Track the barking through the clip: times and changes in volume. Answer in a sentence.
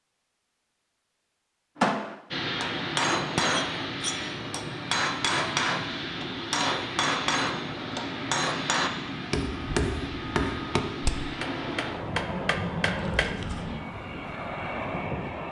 The barking can't be heard in this clip.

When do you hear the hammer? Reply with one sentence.
You can hear the hammer from 1.8 to 13.3 s.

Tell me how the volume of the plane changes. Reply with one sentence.
The loudness of the plane stays about the same.